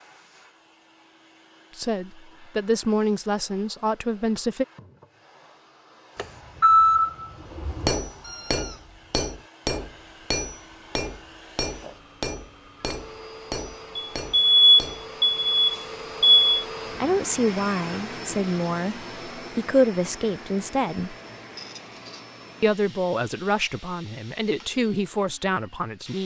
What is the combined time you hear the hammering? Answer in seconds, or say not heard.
8 s.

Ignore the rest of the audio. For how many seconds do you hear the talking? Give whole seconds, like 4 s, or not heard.
11 s.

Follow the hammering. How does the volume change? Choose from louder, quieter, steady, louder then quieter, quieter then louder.
quieter.